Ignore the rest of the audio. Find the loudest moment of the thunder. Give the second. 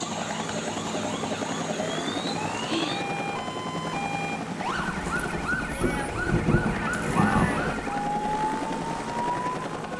7 s.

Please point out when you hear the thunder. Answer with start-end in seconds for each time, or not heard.
5.8-7.8.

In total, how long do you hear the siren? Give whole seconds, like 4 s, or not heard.
10 s.